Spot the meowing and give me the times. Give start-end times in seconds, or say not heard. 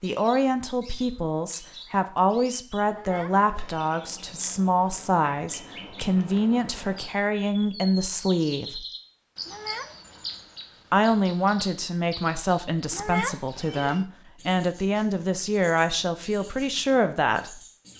2.9-4.0, 9.4-10.2, 12.9-14.1.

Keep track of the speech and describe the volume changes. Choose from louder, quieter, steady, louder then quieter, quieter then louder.
steady.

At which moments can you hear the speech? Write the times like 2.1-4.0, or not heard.
0.0-8.8, 10.9-17.6.